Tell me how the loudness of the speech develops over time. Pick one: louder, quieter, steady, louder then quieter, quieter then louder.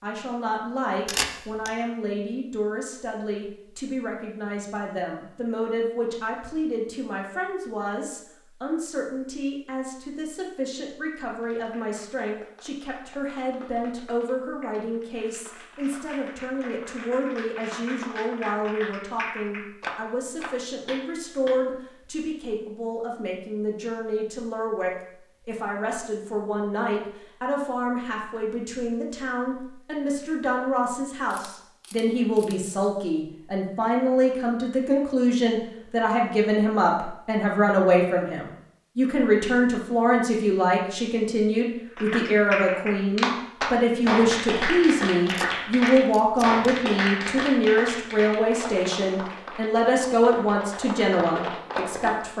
louder.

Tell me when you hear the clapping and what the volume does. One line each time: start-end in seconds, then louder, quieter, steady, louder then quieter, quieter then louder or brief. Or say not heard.
11.4-21.6 louder
42.0-52.2 quieter.